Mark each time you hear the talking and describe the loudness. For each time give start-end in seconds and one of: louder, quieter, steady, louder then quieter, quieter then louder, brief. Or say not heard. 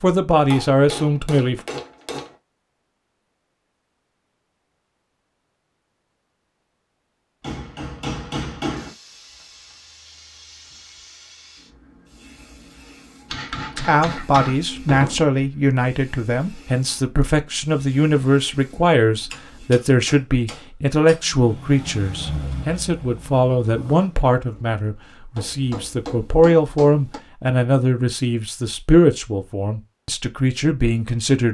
0.0-1.6 brief
13.8-31.5 steady.